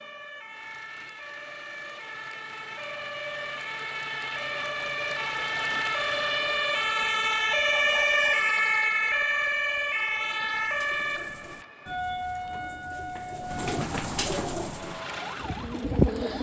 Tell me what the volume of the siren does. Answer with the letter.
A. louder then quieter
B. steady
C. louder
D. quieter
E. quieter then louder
A.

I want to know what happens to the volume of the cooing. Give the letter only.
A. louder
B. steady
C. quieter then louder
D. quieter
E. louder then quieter
E.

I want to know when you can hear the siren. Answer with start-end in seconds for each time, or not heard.
0.0-16.1.